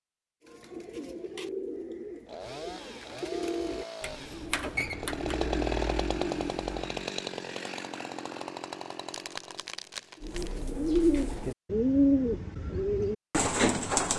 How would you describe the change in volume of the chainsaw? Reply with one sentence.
The volume of the chainsaw goes up, then down.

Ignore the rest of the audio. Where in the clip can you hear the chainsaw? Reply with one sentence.
The chainsaw can be heard from 2.2 to 10.7 s.